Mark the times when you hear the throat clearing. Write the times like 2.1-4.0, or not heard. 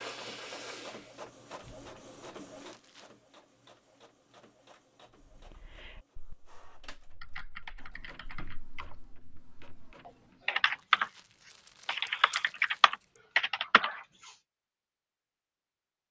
not heard.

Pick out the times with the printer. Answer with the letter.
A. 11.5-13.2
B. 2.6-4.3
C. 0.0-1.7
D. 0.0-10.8
D.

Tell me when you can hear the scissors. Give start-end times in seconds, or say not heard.
11.5-13.2.